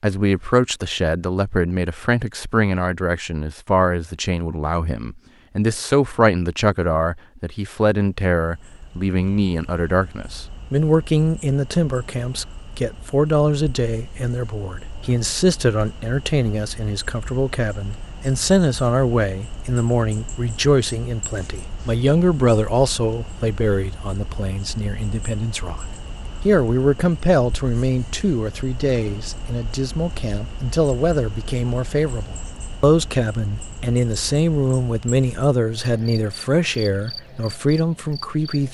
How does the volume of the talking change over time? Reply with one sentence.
The volume of the talking stays about the same.